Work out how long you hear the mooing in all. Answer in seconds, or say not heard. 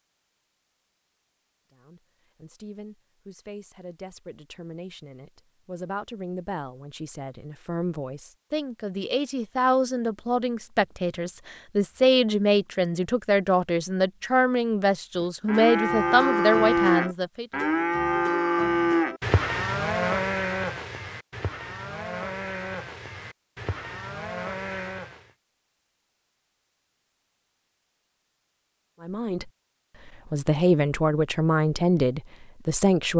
10 s.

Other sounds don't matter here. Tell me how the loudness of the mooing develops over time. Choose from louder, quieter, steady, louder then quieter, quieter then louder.
quieter.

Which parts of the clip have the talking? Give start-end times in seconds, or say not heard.
1.7-17.4, 29.0-33.1.